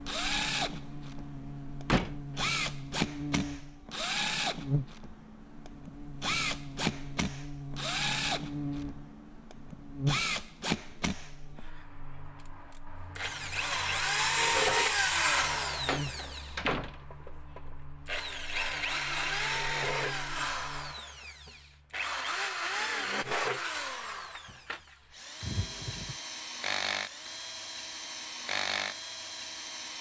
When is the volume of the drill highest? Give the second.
15 s.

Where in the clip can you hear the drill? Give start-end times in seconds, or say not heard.
0.0-29.9.